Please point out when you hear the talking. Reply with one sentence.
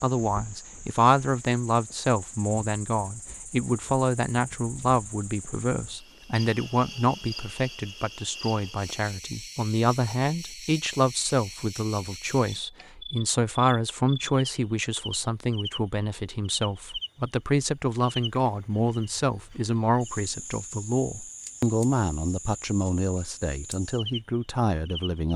The talking can be heard from 0.0 to 25.3 s.